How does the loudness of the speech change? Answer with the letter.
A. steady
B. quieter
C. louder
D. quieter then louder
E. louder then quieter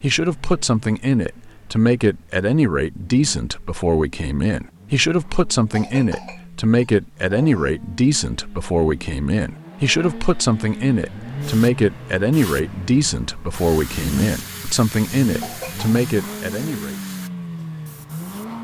A.